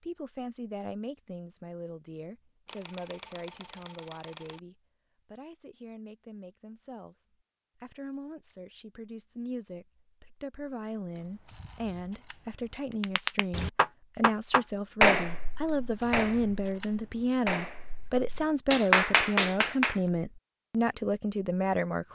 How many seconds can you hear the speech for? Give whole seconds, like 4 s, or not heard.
22 s.